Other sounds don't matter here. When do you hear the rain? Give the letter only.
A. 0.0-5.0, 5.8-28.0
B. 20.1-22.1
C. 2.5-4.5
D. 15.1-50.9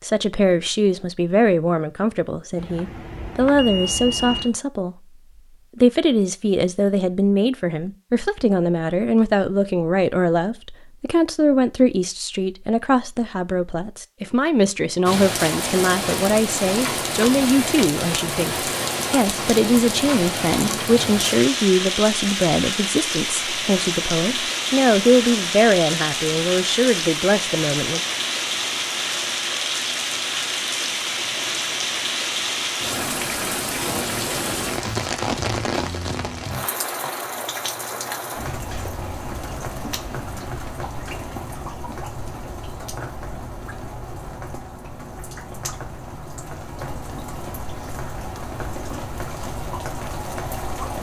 D.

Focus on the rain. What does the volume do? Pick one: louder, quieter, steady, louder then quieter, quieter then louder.
quieter.